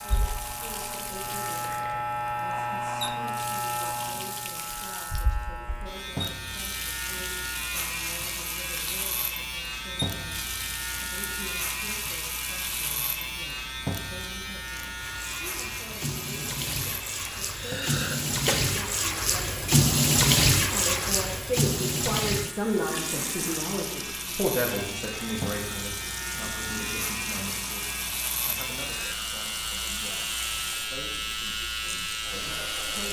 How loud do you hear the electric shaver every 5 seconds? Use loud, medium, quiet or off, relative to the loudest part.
loud, loud, loud, medium, medium, loud, loud.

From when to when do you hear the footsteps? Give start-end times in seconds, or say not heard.
not heard.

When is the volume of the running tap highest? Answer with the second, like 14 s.
20 s.